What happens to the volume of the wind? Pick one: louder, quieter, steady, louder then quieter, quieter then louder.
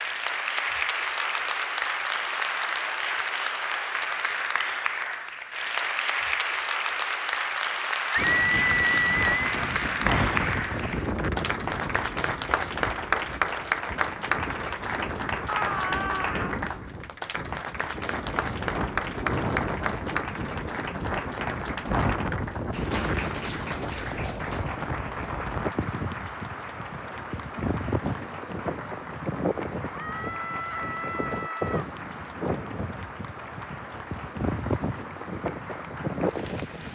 steady.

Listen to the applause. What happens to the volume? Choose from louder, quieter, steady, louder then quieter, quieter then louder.
quieter.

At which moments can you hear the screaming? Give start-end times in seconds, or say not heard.
8.2-9.4, 15.4-16.6, 29.9-31.9.